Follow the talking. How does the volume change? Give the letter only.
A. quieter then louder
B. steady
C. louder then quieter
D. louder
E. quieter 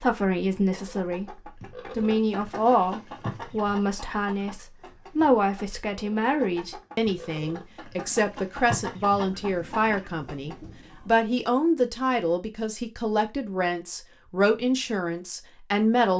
B.